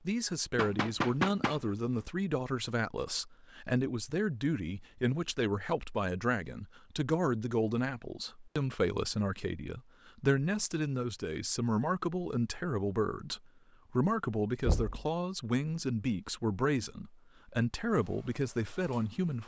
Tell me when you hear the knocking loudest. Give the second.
1 s.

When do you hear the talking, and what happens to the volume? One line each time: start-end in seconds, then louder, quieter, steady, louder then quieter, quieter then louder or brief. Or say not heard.
0.1-19.4 steady.